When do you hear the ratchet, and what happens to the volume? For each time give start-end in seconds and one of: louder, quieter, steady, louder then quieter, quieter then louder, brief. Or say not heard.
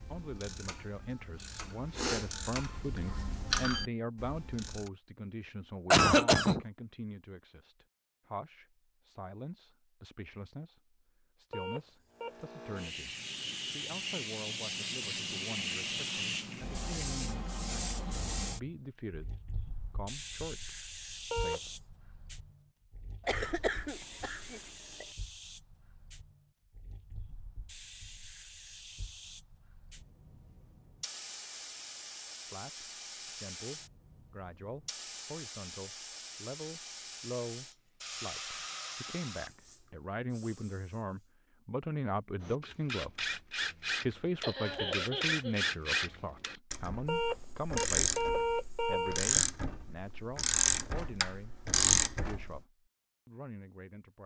0.0-4.9 louder then quieter
42.4-52.6 louder.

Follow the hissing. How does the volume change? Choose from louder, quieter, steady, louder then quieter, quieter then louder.
quieter then louder.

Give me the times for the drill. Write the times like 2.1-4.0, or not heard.
not heard.